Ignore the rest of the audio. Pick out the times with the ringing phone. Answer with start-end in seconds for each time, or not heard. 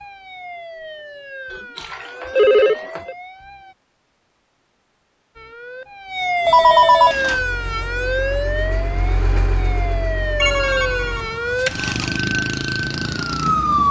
1.5-3.1, 6.5-7.2, 10.3-11.8.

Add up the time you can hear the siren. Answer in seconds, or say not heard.
12 s.